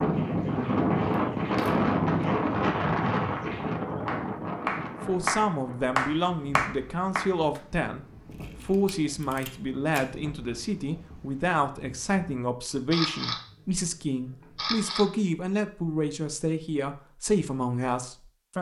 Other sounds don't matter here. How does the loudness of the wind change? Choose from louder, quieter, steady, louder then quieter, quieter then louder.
quieter.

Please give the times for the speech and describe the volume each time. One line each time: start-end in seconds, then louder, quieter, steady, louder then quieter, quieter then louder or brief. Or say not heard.
5.0-18.5 steady.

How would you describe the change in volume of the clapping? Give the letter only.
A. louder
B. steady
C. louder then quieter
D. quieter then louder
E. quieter
A.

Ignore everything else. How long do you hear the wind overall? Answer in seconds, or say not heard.
12 s.